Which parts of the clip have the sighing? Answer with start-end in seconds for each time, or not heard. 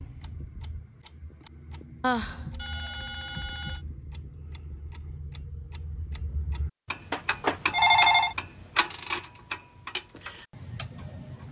2.0-2.5.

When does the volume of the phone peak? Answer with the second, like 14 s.
8 s.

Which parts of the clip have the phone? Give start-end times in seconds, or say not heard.
2.2-3.9, 7.1-8.3.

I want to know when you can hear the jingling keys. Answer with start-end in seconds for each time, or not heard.
not heard.